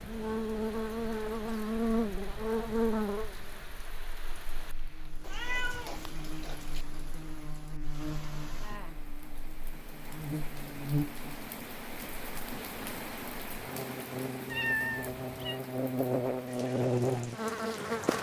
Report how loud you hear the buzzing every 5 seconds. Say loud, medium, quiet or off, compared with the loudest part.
loud, quiet, medium, loud.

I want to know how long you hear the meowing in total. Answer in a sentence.
The meowing can be heard for 3 seconds in total.